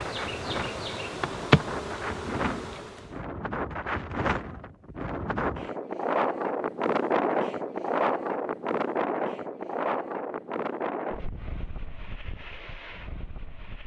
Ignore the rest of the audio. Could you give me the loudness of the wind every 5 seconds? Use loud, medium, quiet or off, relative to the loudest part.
medium, loud, medium.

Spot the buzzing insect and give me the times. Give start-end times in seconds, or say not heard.
0.0-3.2.